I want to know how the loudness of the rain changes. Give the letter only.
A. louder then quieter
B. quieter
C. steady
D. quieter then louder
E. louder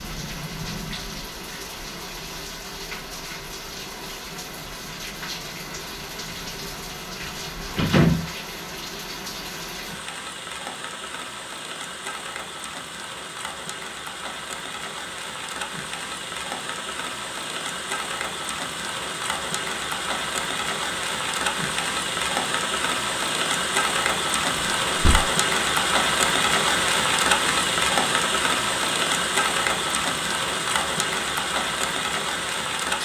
E.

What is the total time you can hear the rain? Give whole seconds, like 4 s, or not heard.
33 s.